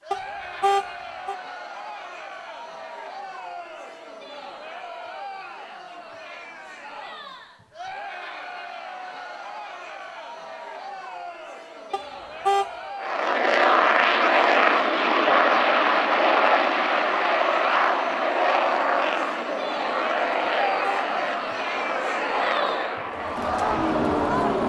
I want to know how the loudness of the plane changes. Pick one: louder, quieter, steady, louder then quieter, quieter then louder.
quieter.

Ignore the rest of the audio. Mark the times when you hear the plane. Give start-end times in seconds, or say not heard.
12.9-24.6.